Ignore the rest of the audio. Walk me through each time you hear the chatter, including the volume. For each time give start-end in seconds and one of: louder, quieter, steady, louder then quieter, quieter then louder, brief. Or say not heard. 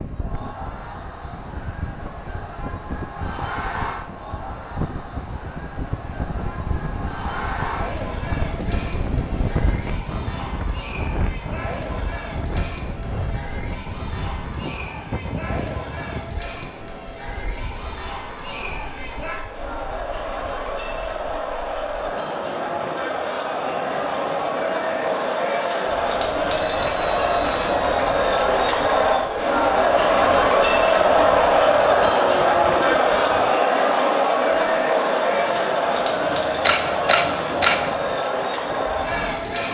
0.0-39.6 louder.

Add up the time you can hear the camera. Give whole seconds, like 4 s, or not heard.
2 s.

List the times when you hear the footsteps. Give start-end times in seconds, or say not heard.
not heard.